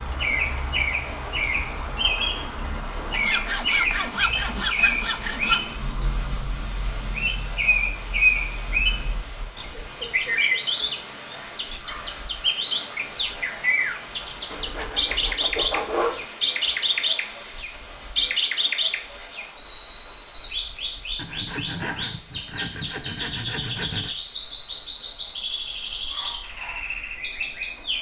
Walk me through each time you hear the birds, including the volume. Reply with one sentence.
The birds can be heard from 0.0 to 27.9 s, at a steady volume.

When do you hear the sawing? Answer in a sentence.
The sawing can be heard from 3.1 to 5.6 s, from 14.5 to 16.2 s and from 21.1 to 24.1 s.